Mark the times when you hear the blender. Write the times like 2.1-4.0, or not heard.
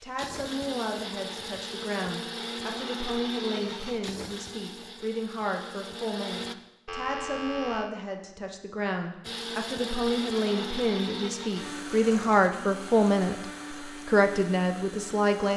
0.0-6.5, 9.2-15.5.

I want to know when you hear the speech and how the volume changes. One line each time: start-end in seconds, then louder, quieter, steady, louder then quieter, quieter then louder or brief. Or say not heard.
0.0-15.5 louder.